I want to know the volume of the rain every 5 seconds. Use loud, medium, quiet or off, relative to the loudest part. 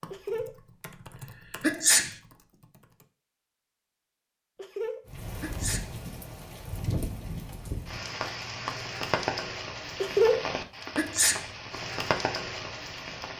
off, loud, loud.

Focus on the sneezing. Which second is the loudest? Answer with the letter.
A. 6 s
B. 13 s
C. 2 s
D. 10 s
C.